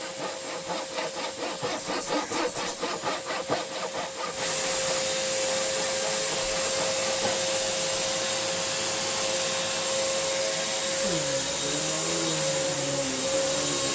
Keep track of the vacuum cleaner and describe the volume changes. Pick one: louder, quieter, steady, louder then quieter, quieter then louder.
louder.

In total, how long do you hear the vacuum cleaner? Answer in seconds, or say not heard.
14 s.